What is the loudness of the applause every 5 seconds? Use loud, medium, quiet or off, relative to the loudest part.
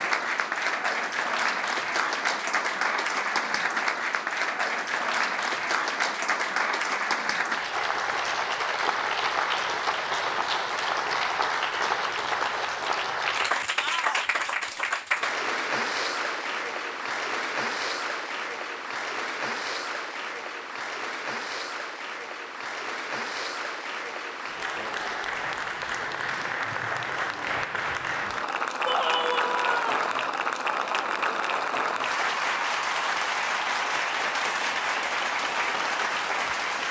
loud, loud, loud, loud, medium, loud, loud, loud.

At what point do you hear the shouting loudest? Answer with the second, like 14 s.
29 s.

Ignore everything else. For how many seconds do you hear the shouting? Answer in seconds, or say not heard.
2 s.